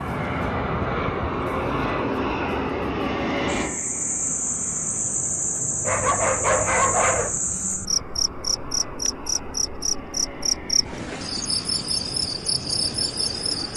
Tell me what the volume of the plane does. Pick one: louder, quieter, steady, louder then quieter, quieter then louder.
quieter.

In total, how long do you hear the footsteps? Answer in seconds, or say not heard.
not heard.